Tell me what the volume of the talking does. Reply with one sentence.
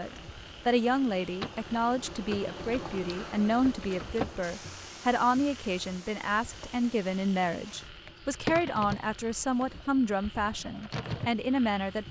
The loudness of the talking stays about the same.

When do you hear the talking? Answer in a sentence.
The talking can be heard from 0.0 to 12.0 s.